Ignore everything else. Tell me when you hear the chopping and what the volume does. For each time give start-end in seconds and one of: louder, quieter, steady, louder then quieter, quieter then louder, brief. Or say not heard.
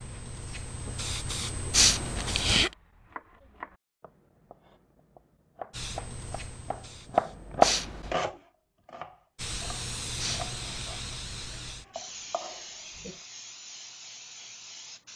2.5-13.2 louder then quieter.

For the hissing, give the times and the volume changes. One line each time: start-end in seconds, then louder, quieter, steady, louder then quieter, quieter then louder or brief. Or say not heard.
0.0-2.6 brief
5.7-7.6 brief
9.3-15.1 quieter.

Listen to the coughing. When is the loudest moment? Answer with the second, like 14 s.
2 s.